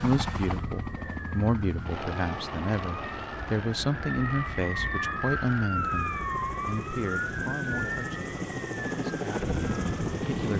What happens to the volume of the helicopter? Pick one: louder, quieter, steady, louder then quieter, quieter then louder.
quieter then louder.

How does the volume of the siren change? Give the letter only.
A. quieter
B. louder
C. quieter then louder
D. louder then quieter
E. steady
D.